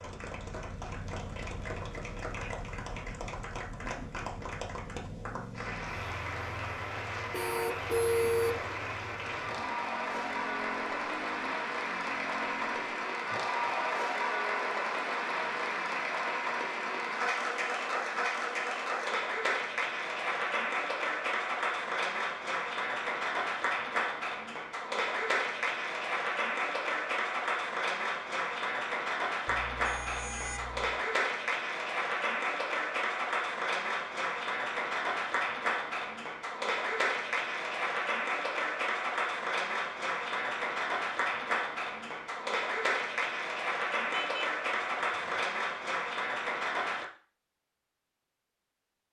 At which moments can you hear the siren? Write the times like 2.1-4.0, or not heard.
not heard.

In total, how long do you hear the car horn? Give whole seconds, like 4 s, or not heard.
4 s.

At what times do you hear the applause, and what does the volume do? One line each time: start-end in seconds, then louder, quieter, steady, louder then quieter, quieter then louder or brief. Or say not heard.
0.0-47.0 louder.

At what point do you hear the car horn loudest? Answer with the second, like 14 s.
8 s.